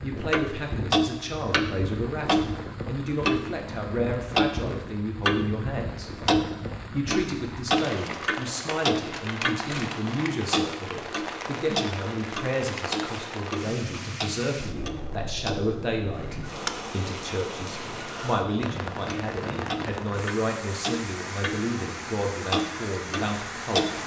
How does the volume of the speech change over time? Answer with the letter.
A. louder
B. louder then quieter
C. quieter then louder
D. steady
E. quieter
D.